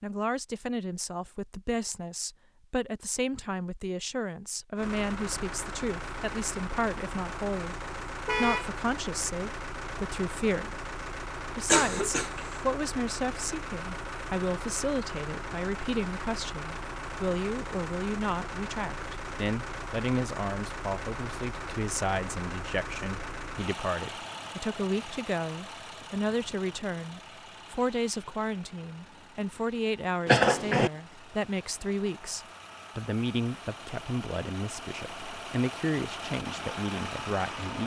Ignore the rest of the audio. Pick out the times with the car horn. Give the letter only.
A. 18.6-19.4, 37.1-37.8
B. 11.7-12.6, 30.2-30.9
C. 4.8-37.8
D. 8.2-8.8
D.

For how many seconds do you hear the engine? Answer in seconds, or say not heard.
33 s.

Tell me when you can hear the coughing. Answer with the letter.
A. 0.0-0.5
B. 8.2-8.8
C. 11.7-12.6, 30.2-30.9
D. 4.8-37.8
C.